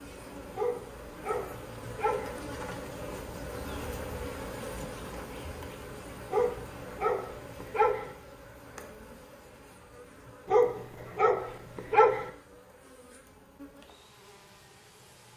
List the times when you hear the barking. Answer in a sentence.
You can hear the barking from 0.6 to 2.4 s, from 6.3 to 8.1 s and from 10.4 to 12.3 s.